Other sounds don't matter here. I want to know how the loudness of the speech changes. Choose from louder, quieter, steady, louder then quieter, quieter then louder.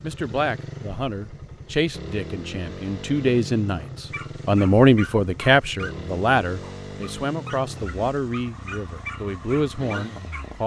louder then quieter.